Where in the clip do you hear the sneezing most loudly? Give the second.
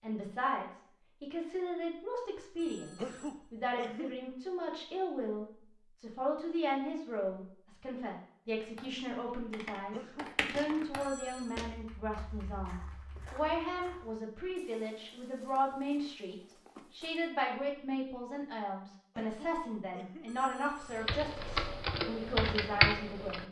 3 s.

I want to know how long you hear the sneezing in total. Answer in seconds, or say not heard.
3 s.